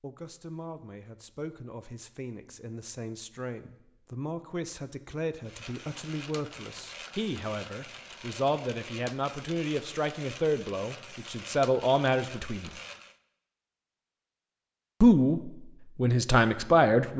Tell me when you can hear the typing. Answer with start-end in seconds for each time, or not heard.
not heard.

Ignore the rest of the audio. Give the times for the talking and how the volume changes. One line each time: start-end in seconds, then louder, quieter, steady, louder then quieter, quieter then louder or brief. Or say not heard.
0.0-12.7 louder
15.0-17.1 brief.